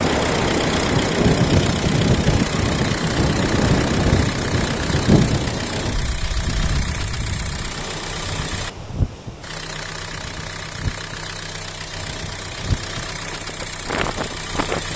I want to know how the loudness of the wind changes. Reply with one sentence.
The volume of the wind goes down.